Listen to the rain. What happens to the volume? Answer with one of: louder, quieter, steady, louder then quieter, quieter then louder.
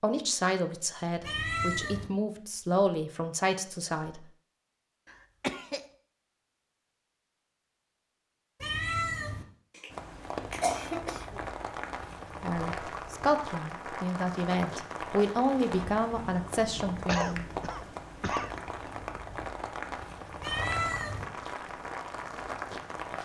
steady.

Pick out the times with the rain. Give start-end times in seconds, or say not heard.
9.9-23.1.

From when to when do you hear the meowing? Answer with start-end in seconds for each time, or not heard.
1.2-2.1, 8.6-9.4, 20.4-21.2.